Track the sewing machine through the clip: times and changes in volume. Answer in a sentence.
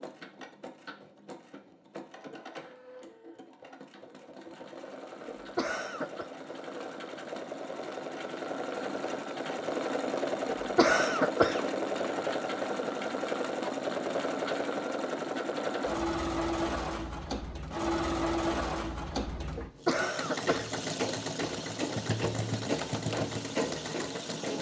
The sewing machine can be heard from 0.0 to 24.5 s, getting louder.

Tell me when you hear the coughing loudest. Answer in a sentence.
The loudest moment of the coughing is at 11 seconds.